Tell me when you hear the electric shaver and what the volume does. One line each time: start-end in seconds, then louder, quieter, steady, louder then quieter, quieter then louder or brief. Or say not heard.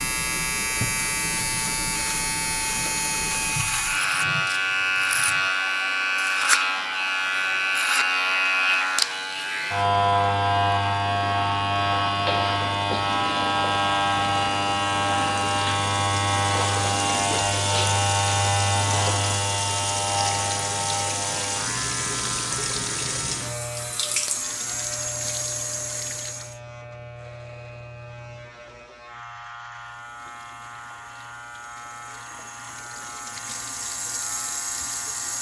0.0-35.3 quieter.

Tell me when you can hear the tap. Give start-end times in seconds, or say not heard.
0.0-26.6, 29.8-35.3.